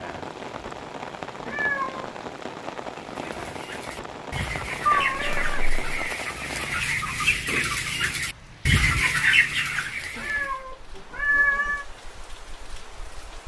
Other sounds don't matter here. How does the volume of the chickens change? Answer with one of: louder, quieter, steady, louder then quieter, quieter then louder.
louder.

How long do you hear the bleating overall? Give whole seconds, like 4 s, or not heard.
not heard.